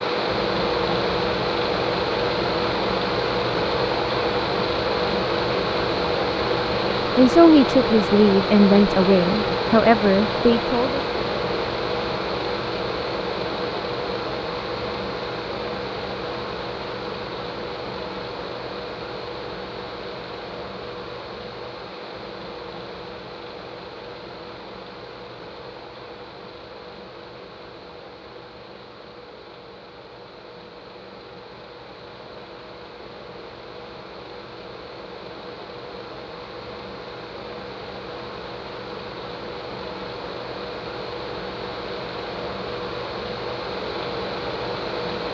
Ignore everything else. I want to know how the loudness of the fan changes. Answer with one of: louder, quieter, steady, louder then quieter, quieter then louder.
quieter then louder.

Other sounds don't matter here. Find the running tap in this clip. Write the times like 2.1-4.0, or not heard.
not heard.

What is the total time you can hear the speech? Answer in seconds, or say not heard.
4 s.